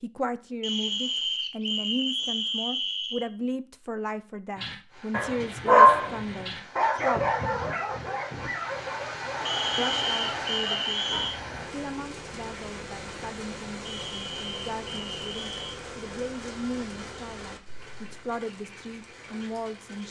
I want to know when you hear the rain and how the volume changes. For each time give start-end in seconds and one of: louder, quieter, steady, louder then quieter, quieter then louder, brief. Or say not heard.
4.8-20.0 louder then quieter.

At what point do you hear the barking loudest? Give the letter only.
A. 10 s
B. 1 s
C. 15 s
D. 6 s
D.